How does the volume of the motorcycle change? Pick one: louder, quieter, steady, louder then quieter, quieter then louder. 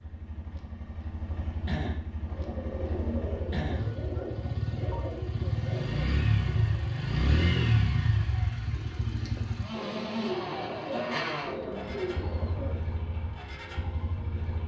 louder then quieter.